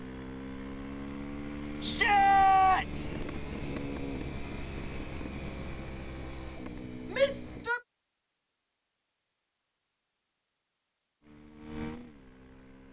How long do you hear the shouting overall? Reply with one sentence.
The shouting can be heard for 2 seconds in total.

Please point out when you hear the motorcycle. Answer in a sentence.
The motorcycle can be heard from 0.0 to 7.7 s and from 11.2 to 12.8 s.